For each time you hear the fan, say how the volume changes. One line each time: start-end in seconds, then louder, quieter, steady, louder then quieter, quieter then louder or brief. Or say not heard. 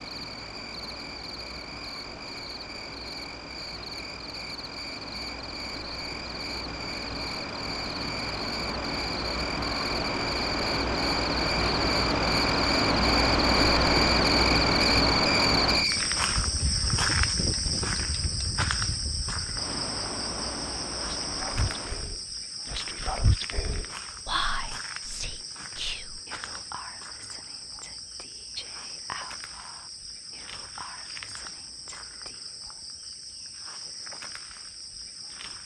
0.0-22.1 louder then quieter.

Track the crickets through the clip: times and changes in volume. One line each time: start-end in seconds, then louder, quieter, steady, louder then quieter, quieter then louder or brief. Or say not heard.
0.0-35.6 louder then quieter.